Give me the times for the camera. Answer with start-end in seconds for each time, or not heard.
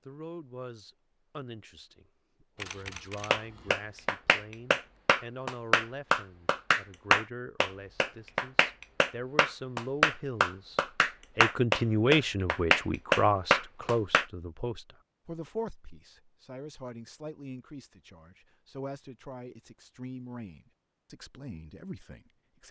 2.5-3.8.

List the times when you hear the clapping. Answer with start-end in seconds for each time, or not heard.
3.3-14.2.